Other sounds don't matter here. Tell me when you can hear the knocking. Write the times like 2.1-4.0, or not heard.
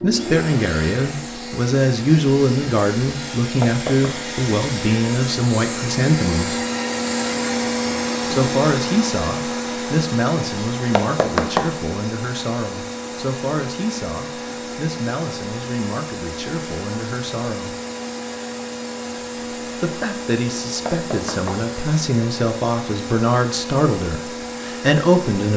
3.6-4.2, 10.9-11.7, 20.9-21.7.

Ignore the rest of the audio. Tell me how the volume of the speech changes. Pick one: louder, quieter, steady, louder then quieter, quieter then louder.
quieter then louder.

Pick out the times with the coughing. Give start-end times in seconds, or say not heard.
not heard.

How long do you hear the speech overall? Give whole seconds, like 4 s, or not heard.
22 s.